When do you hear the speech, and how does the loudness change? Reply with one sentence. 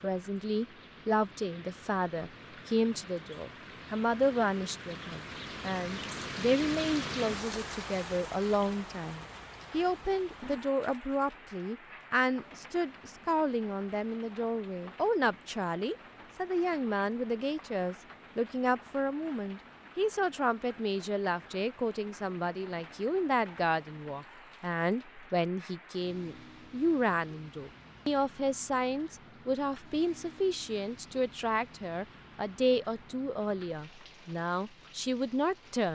The speech can be heard from 0.0 to 35.8 s, at a steady volume.